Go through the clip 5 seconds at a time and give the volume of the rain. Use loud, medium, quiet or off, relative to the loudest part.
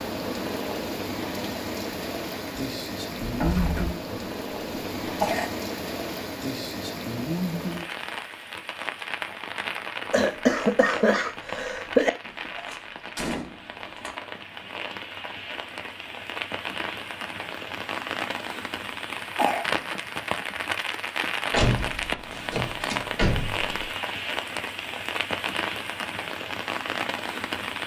loud, loud, medium, loud, loud, loud.